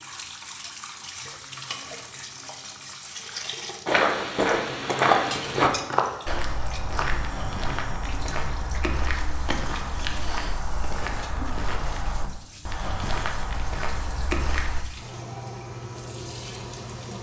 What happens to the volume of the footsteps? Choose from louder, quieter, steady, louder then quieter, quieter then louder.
quieter.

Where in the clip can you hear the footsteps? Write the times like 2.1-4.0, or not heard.
3.9-14.8.